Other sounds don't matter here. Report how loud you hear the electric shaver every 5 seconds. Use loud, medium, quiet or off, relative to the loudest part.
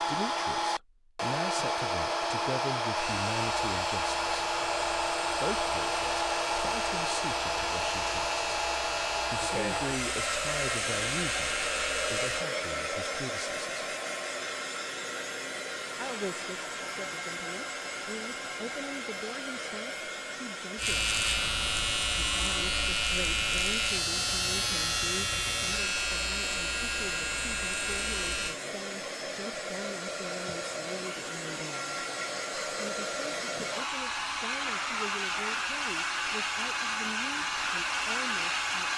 medium, medium, medium, off, loud, loud, off, off.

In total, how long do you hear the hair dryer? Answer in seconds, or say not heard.
39 s.